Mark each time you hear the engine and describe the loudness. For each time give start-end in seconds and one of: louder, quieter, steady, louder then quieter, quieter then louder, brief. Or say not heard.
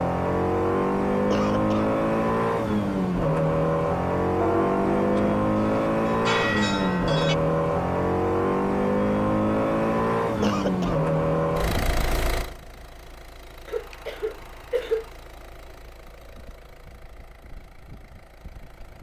0.0-18.9 quieter.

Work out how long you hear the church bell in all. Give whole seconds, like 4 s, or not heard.
3 s.